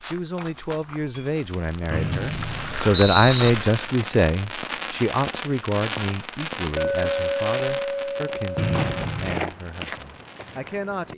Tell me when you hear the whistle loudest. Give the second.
3 s.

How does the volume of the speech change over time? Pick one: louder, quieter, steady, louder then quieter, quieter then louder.
louder then quieter.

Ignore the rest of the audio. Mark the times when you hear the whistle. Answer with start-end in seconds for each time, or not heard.
1.9-3.5, 8.6-9.4.